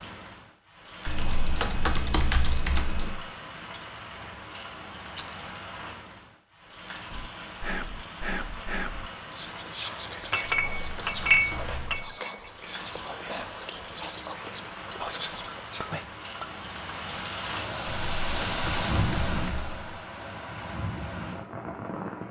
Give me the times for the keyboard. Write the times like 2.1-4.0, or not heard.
1.1-3.1, 10.4-12.1, 17.9-19.9.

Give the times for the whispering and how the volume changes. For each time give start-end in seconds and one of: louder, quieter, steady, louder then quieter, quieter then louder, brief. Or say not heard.
7.1-16.1 steady.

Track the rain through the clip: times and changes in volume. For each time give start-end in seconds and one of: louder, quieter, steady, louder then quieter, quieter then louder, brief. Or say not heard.
0.0-22.2 louder.